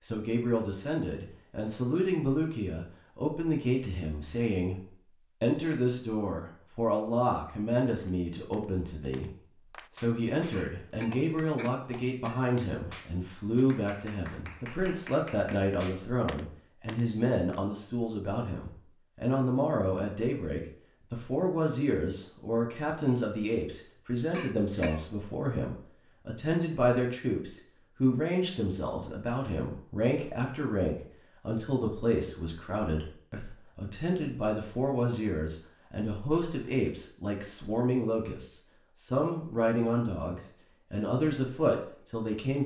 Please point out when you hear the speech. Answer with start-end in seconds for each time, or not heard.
0.0-42.6.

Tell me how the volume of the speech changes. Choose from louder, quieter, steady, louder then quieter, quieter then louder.
steady.